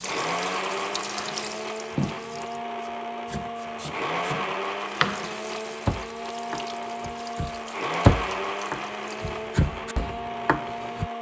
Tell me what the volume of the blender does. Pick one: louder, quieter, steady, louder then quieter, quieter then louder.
steady.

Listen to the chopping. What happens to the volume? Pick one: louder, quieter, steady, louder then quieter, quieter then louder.
louder then quieter.